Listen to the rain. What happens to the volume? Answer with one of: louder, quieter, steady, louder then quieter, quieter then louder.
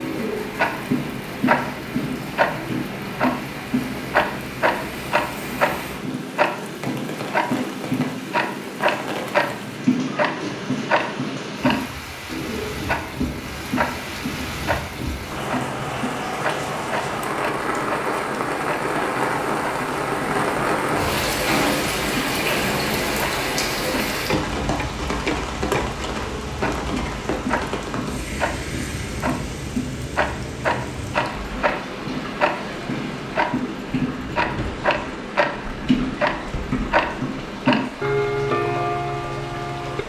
louder then quieter.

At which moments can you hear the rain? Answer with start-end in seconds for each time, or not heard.
0.0-40.0.